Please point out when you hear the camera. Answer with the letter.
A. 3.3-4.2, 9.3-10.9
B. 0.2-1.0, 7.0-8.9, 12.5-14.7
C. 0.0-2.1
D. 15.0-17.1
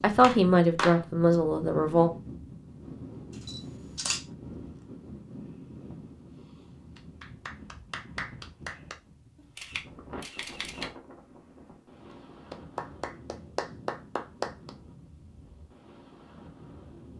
A.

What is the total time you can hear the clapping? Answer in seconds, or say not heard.
5 s.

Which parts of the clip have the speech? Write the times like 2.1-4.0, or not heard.
0.0-2.1.